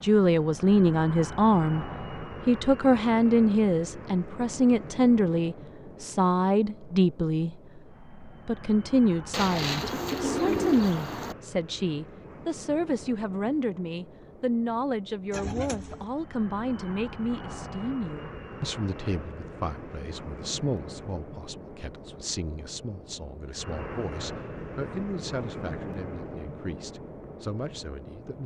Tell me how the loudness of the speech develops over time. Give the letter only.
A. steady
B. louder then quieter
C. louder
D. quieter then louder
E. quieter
E.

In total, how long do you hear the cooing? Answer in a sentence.
The cooing can be heard for 3 seconds in total.